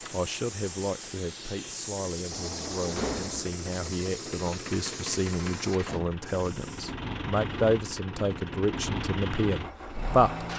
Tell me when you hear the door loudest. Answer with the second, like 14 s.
3 s.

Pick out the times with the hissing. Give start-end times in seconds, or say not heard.
0.0-7.0.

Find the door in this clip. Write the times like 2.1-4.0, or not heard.
2.3-3.5, 5.8-6.2.